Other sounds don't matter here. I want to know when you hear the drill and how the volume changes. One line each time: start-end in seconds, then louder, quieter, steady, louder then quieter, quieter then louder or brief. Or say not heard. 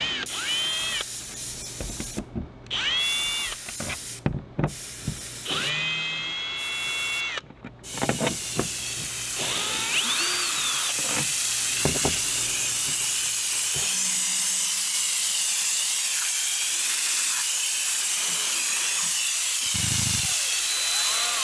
0.0-21.3 quieter then louder.